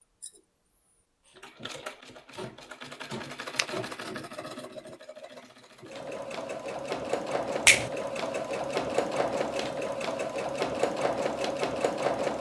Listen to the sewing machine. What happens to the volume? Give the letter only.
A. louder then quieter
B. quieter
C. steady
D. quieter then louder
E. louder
E.